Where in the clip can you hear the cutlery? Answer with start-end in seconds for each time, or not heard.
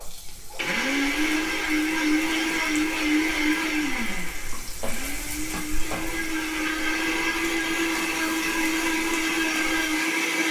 not heard.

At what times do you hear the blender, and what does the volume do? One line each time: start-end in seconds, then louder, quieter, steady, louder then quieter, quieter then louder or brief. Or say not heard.
0.0-10.4 quieter then louder.